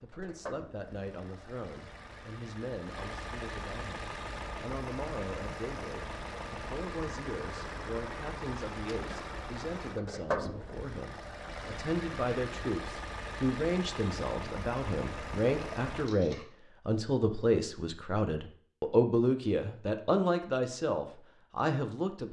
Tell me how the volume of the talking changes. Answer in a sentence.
The volume of the talking goes up.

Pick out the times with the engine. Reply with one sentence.
You can hear the engine from 0.0 to 16.1 s.